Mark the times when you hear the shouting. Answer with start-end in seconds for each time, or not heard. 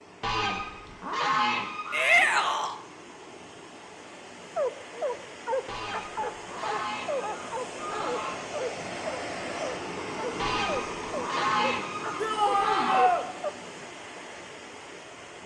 1.9-2.8, 12.2-13.2.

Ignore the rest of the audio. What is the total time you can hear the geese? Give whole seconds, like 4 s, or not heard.
8 s.